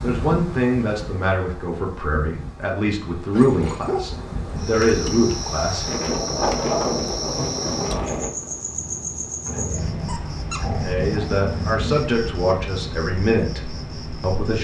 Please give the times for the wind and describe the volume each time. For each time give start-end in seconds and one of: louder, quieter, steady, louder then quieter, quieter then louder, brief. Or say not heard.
0.0-8.3 louder.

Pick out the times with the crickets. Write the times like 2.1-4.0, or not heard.
4.5-14.5.